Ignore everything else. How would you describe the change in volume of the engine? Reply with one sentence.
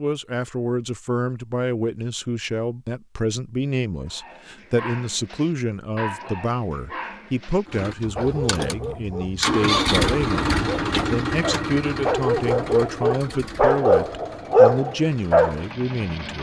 The volume of the engine goes up, then down.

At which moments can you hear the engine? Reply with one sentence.
You can hear the engine from 7.7 to 16.3 s.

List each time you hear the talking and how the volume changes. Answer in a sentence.
The talking can be heard from 0.0 to 16.3 s, at a steady volume.